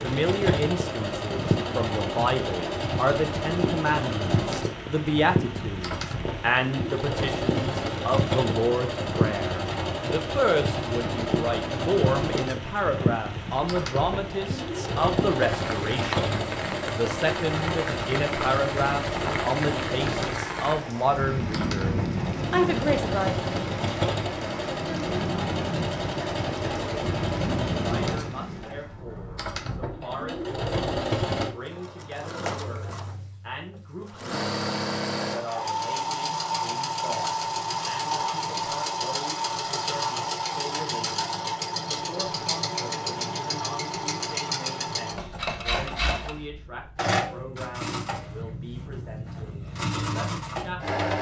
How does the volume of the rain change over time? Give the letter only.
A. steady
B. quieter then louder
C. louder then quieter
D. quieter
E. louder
A.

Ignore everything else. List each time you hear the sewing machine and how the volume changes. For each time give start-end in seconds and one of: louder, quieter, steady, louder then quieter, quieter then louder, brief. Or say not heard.
0.0-51.1 steady.